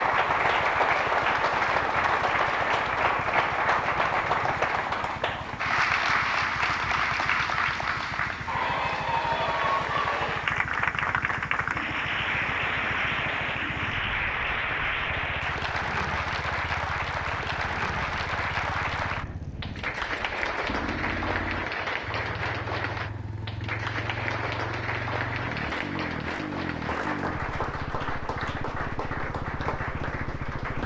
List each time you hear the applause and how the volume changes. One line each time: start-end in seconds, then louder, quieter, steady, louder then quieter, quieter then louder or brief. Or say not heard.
0.0-30.8 quieter.